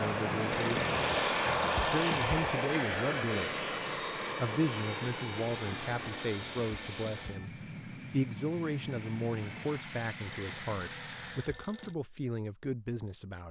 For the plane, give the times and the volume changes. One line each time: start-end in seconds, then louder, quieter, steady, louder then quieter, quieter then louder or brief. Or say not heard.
0.0-11.6 quieter.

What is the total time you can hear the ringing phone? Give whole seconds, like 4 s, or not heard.
6 s.